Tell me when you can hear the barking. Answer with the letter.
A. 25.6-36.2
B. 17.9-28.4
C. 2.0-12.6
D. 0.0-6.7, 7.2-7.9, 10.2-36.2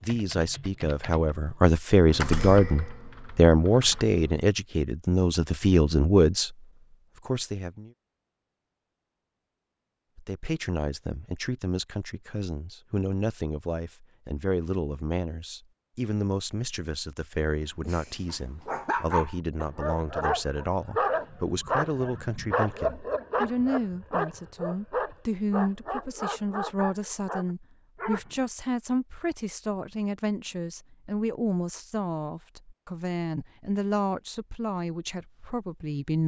B.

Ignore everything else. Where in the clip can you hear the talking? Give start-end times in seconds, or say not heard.
0.0-6.7, 7.2-7.9, 10.2-36.2.